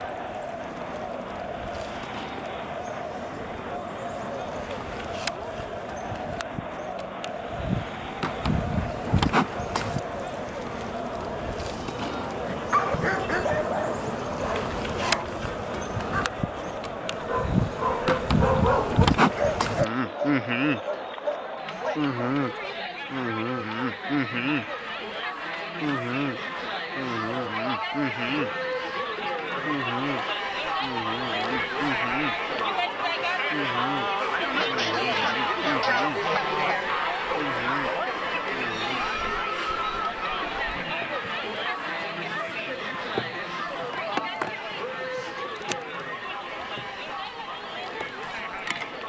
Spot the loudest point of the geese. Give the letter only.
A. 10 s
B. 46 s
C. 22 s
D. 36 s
D.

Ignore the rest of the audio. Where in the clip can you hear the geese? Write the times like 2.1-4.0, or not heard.
34.5-36.9.